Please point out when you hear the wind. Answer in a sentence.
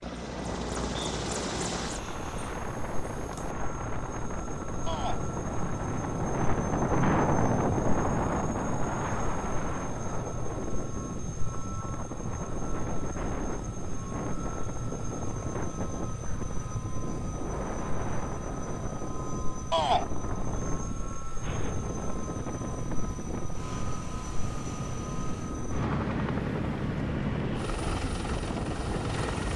You can hear the wind from 0.0 to 29.5 s.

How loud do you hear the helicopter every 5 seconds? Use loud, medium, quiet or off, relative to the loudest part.
medium, medium, medium, medium, medium, loud.